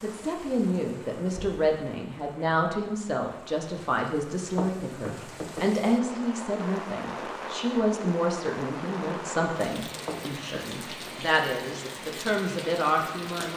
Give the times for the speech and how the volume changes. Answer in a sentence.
You can hear the speech from 0.0 to 13.5 s, at a steady volume.